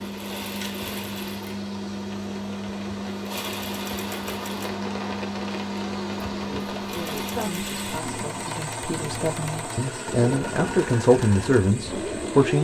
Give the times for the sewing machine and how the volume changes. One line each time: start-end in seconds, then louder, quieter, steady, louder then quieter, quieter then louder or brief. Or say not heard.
0.0-12.6 steady.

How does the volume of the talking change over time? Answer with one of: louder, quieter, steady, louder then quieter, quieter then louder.
louder.